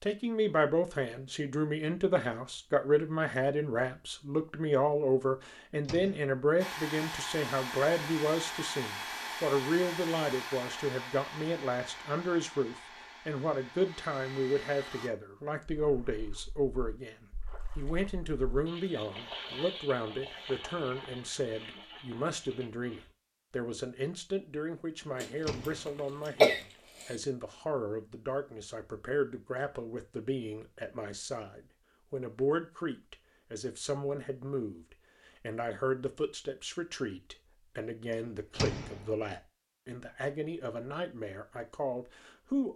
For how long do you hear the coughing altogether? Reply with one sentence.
You can hear the coughing for 2 seconds altogether.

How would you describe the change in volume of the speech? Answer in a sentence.
The volume of the speech goes down.